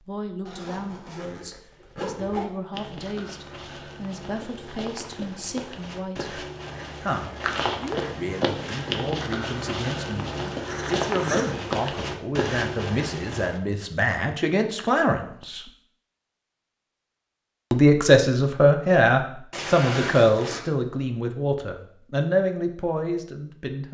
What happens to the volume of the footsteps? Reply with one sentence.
The volume of the footsteps goes up.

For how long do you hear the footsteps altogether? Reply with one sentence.
The footsteps can be heard for 11 seconds in total.